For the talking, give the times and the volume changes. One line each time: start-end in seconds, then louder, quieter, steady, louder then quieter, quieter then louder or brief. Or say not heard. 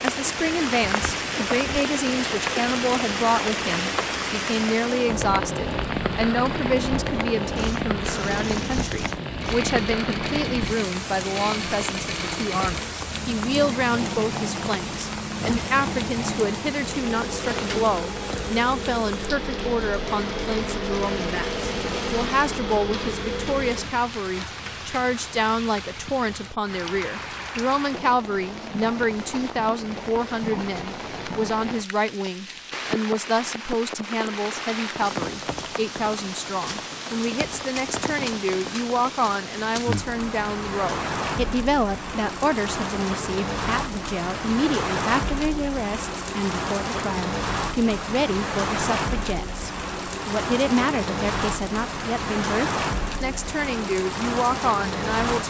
0.0-55.4 steady.